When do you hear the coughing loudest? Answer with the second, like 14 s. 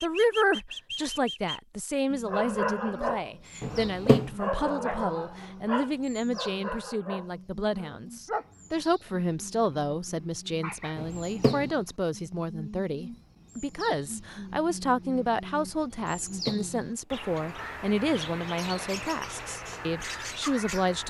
4 s.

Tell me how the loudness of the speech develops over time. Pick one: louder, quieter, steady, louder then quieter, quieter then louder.
steady.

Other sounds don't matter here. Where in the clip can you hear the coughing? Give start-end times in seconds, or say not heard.
3.6-4.3, 10.9-11.7, 16.2-17.2.